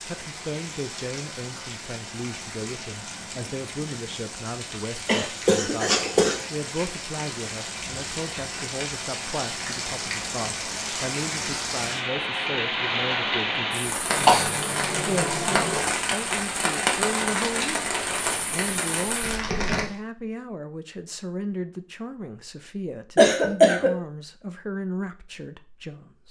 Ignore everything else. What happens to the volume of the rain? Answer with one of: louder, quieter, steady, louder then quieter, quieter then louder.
louder.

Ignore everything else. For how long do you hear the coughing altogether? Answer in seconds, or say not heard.
4 s.